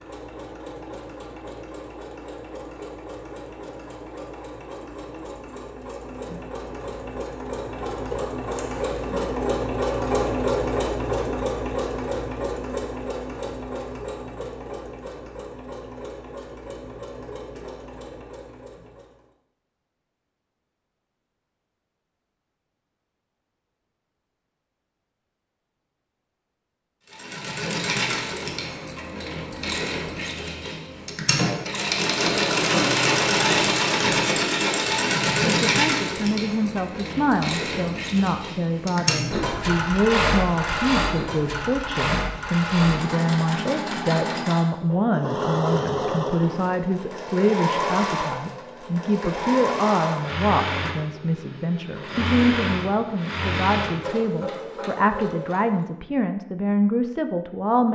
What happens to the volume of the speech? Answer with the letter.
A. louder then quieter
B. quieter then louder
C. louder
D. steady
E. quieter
D.